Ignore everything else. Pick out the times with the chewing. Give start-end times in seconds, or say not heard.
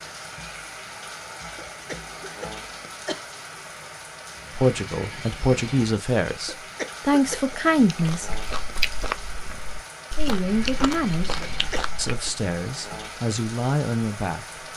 7.9-12.3.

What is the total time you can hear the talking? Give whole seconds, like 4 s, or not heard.
8 s.